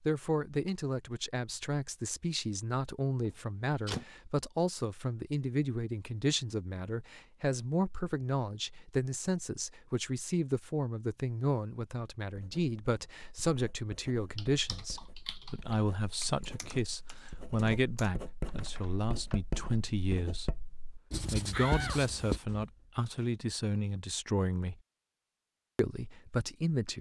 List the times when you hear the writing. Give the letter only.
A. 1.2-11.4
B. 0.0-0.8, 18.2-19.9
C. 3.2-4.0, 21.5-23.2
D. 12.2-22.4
D.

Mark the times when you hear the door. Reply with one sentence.
The door can be heard from 3.2 to 4.0 s and from 21.5 to 23.2 s.